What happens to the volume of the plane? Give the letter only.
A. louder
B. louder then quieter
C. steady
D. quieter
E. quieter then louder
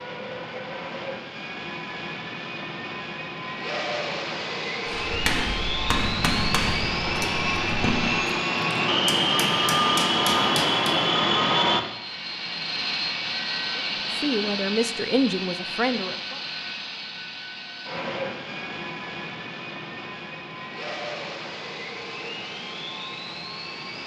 B.